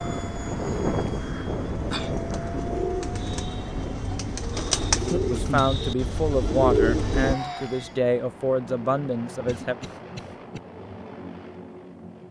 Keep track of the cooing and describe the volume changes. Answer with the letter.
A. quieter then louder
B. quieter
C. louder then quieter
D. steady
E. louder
E.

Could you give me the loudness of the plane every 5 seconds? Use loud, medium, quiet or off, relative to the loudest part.
loud, medium, medium.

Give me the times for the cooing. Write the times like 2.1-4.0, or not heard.
0.0-7.3.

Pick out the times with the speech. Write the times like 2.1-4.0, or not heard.
5.3-9.8.